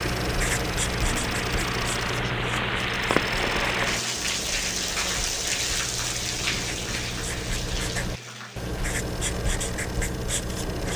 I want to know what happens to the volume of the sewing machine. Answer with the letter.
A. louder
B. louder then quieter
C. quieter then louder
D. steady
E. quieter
E.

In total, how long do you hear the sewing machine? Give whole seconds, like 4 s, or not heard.
11 s.